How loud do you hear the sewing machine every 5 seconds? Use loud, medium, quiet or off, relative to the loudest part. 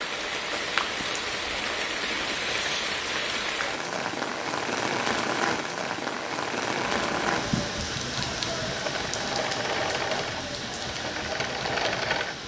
off, loud, loud.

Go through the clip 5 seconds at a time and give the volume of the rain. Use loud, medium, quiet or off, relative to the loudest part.
loud, loud, medium.